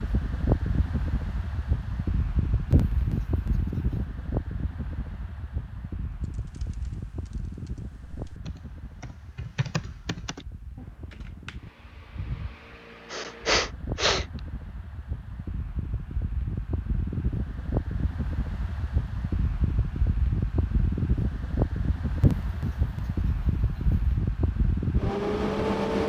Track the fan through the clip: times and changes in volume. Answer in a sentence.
You can hear the fan from 0.0 to 26.0 s, getting quieter then louder.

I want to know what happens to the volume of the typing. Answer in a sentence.
The volume of the typing goes up, then down.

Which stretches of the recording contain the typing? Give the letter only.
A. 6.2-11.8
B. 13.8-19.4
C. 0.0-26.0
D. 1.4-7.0
A.